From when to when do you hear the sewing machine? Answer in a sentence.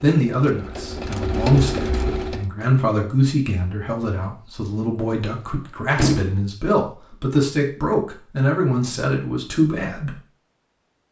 The sewing machine can be heard from 0.2 to 2.5 s.